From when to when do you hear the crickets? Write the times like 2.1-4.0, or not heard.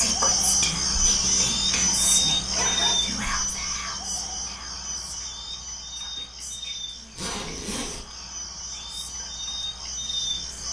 0.0-10.6.